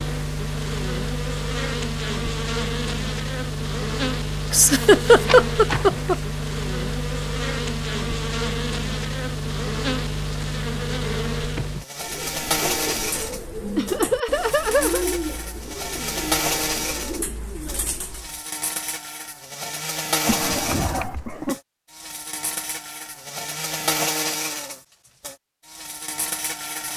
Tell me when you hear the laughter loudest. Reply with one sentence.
The loudest moment of the laughter is at 5 seconds.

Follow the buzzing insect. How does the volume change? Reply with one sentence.
The volume of the buzzing insect stays about the same.